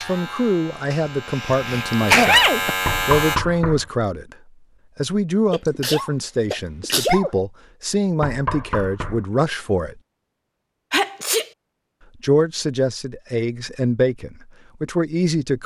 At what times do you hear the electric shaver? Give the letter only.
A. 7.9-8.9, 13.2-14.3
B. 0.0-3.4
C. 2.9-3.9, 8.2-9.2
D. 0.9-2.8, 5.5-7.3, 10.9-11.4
B.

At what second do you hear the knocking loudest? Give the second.
3 s.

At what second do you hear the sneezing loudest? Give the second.
2 s.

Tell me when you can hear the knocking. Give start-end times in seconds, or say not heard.
2.9-3.9, 8.2-9.2.